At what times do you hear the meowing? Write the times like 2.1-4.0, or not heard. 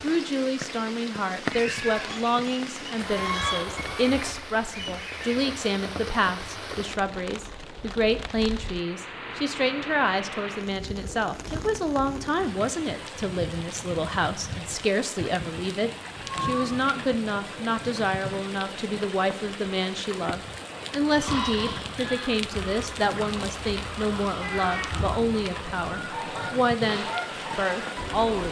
1.8-3.0, 16.2-16.9, 24.4-25.1.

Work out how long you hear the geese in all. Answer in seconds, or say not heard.
11 s.